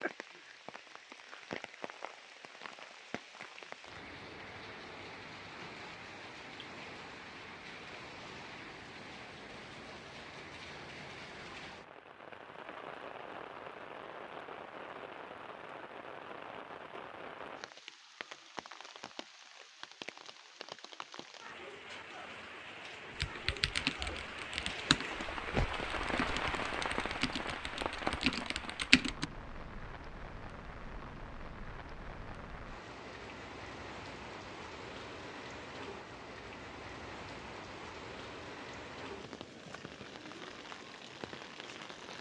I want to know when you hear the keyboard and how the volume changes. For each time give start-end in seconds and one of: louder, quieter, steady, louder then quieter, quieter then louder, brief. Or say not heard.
23.2-29.2 quieter then louder.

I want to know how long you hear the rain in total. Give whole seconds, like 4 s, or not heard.
42 s.